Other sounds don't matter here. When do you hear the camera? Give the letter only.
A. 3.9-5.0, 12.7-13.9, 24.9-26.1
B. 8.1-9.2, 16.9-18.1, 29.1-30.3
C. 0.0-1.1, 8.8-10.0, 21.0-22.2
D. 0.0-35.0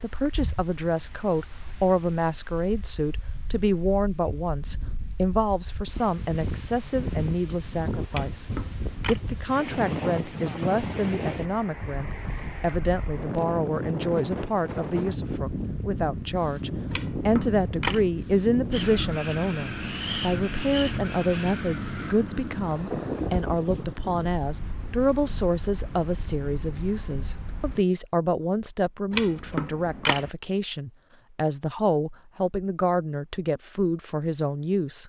B.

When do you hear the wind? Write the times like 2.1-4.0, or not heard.
0.0-27.9.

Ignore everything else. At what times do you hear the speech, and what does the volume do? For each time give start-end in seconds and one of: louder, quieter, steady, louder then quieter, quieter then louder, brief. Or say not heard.
0.0-35.0 steady.